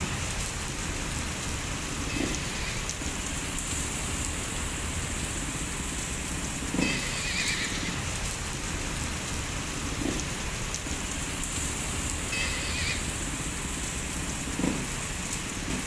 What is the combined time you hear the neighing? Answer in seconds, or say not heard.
3 s.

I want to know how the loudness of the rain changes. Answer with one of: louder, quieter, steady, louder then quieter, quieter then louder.
steady.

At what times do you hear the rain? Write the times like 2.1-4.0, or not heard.
0.0-15.8.